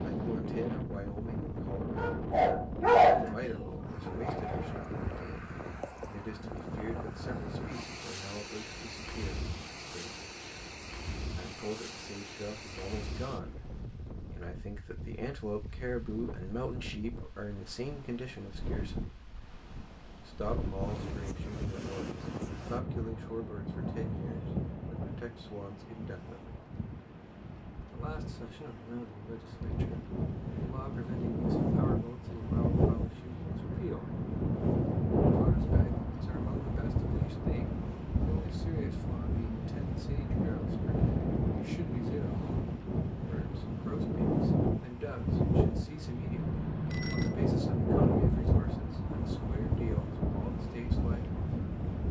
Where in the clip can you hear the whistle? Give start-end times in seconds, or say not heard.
not heard.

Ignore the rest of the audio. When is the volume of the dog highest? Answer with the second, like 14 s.
3 s.